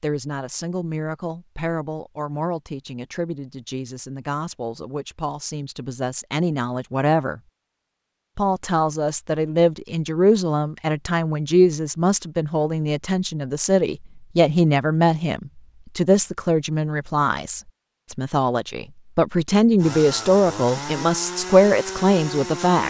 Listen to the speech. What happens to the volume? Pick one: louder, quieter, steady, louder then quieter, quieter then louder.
louder.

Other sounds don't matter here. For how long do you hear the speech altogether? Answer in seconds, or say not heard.
22 s.